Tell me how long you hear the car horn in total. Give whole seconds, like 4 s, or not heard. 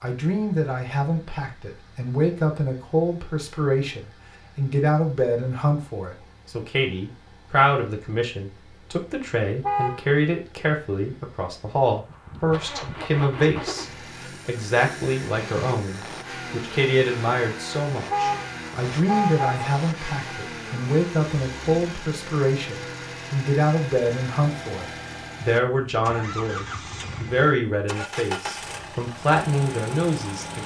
2 s.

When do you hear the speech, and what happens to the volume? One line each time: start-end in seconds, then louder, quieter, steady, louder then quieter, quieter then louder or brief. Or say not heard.
0.0-30.6 steady.